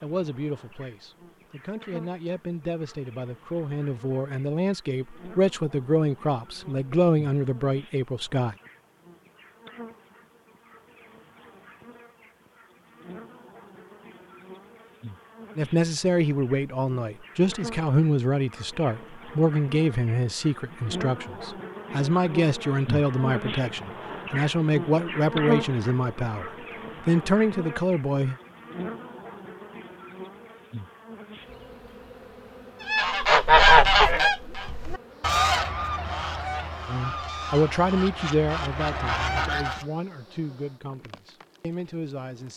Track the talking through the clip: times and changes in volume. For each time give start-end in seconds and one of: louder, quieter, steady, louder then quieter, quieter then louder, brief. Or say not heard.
0.0-8.6 louder
15.6-28.4 steady
36.9-42.5 quieter.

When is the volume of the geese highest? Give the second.
34 s.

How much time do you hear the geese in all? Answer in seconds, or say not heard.
7 s.